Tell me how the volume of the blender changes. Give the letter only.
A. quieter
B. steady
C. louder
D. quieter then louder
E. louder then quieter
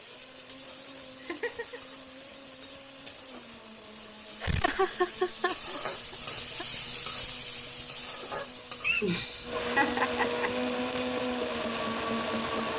C.